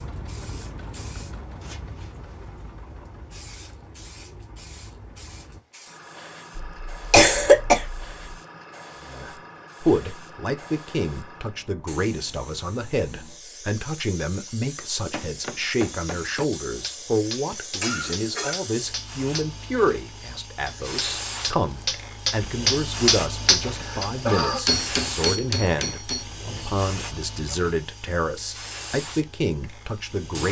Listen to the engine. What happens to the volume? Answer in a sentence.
The loudness of the engine goes down.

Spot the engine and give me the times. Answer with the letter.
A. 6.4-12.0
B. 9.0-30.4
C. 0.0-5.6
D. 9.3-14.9
C.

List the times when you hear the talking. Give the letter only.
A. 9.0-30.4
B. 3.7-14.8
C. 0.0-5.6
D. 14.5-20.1
A.